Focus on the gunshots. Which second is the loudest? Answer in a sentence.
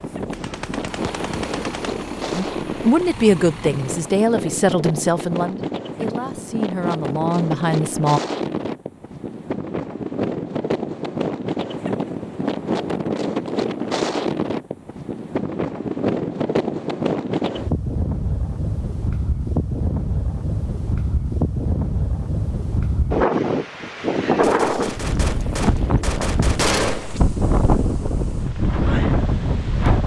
The loudest moment of the gunshots is at 27 seconds.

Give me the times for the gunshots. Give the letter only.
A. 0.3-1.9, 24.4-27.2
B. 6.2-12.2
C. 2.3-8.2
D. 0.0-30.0
A.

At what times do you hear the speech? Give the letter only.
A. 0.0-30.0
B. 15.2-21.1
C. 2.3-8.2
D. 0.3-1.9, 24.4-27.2
C.